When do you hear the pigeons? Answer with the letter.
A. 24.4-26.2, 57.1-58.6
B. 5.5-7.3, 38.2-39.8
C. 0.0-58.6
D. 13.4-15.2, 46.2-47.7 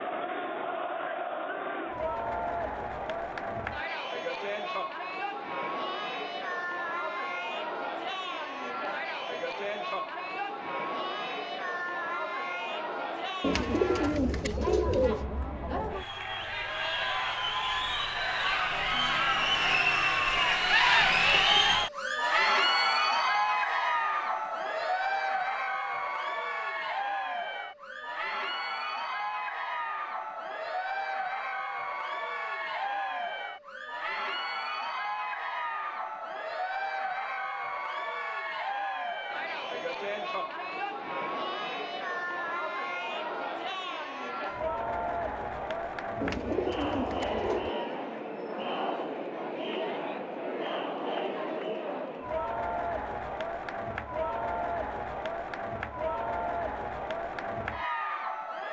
D.